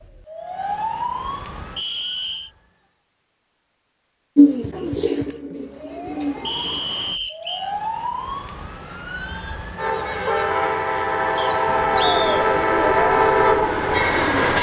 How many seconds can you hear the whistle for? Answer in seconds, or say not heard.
3 s.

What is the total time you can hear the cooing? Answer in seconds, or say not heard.
5 s.